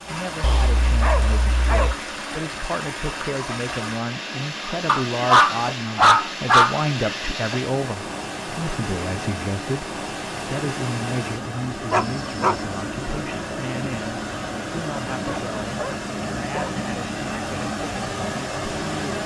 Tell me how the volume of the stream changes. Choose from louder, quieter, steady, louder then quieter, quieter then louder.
steady.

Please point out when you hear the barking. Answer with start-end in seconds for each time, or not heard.
0.4-1.9, 4.8-6.8, 11.9-12.6, 15.2-16.8.